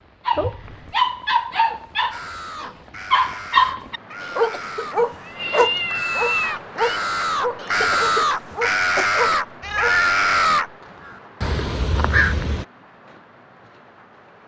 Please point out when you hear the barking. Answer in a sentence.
You can hear the barking from 0.2 to 10.0 s.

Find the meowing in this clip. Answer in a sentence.
You can hear the meowing from 0.3 to 0.9 s, from 5.0 to 7.0 s and from 9.6 to 10.2 s.